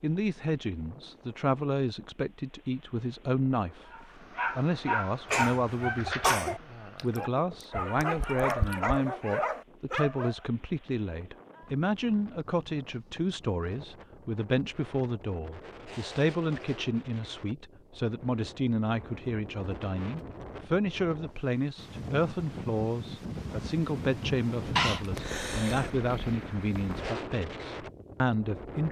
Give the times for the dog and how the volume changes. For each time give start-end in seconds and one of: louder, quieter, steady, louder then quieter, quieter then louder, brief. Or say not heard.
3.9-10.3 quieter then louder.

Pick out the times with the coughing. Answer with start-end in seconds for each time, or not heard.
5.3-6.6, 24.8-25.9.